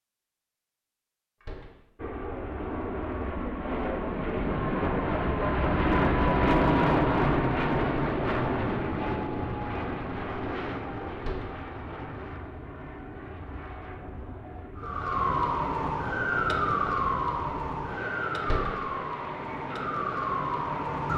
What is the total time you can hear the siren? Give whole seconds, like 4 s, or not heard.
6 s.